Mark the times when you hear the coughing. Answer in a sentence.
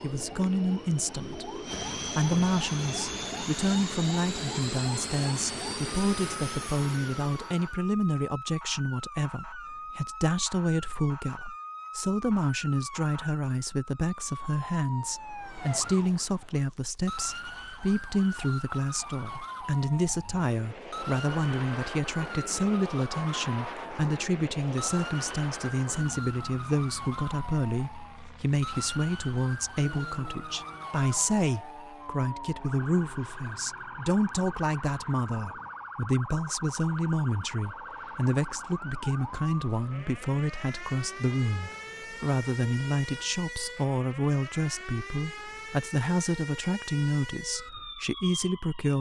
The coughing can't be heard in this clip.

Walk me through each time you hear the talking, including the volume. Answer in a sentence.
The talking can be heard from 0.0 to 48.9 s, at a steady volume.